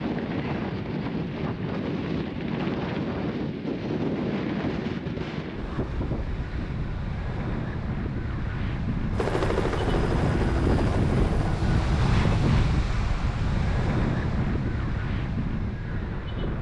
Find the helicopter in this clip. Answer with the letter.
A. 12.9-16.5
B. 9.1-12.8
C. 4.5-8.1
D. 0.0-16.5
B.